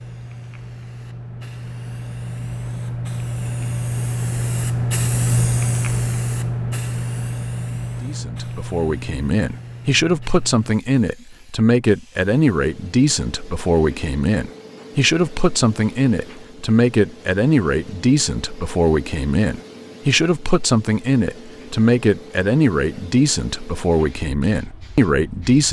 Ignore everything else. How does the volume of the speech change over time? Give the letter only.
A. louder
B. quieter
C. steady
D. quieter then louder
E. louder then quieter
C.